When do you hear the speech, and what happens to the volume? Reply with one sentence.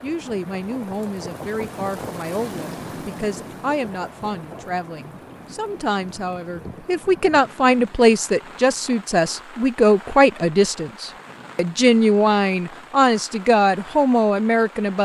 The speech can be heard from 0.0 to 15.0 s, getting louder.